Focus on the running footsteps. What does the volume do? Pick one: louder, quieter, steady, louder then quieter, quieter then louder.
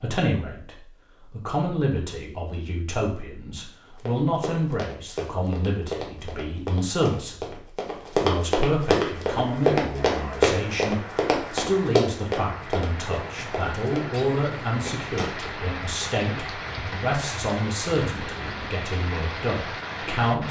louder then quieter.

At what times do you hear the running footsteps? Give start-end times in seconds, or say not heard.
4.0-15.3.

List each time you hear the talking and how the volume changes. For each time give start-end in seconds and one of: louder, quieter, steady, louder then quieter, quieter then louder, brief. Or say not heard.
0.0-20.4 steady.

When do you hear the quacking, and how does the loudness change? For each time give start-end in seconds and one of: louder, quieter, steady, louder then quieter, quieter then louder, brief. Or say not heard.
not heard.